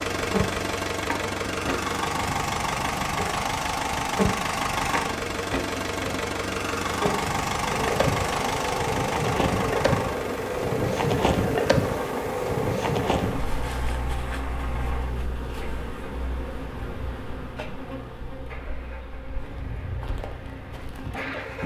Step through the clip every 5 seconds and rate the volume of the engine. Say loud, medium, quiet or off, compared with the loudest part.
loud, loud, medium, quiet, quiet.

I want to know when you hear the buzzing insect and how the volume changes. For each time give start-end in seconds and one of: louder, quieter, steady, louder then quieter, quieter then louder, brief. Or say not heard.
0.2-21.6 louder then quieter.